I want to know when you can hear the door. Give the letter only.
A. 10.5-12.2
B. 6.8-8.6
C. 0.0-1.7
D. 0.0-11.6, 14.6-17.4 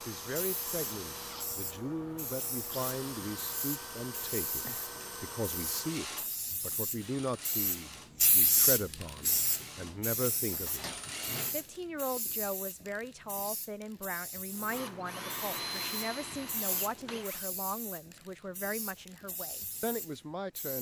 A.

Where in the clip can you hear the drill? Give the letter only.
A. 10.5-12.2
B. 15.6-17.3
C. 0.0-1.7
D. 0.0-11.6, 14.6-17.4
D.